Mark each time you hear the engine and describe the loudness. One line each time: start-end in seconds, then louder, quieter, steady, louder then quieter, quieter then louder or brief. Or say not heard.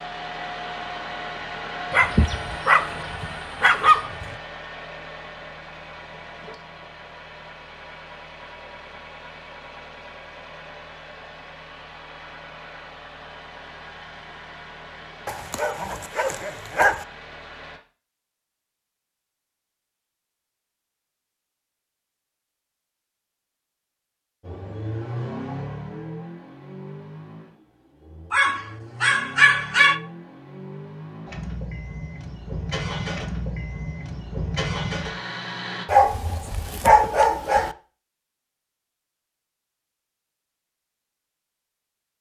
0.0-17.8 quieter
24.4-35.9 quieter then louder.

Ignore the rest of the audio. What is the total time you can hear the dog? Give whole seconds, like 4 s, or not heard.
8 s.